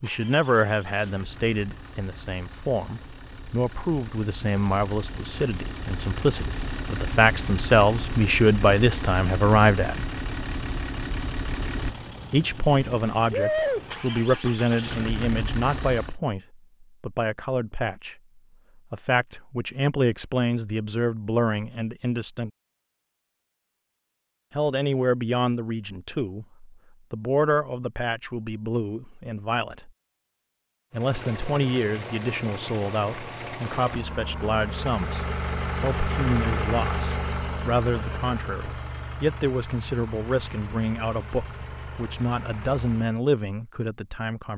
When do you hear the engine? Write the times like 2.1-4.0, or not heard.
0.0-16.2, 30.9-43.2.